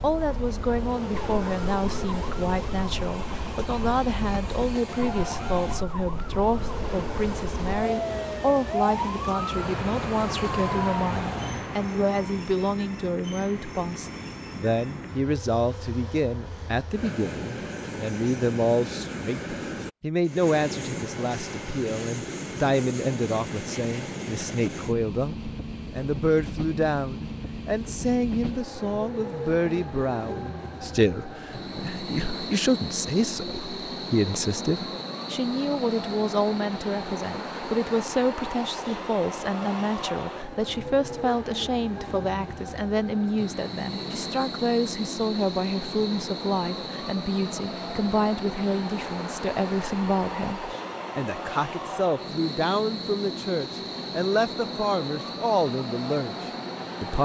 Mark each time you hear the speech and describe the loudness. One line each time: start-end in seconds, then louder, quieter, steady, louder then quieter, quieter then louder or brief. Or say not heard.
0.0-57.2 steady.